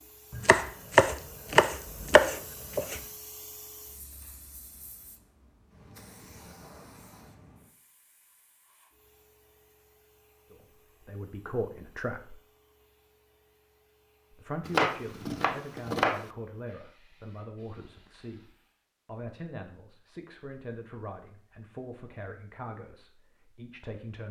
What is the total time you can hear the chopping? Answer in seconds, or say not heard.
4 s.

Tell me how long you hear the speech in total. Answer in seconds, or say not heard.
12 s.